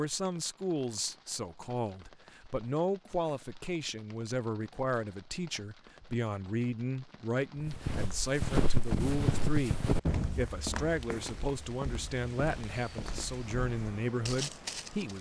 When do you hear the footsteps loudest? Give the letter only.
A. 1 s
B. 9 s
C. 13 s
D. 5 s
B.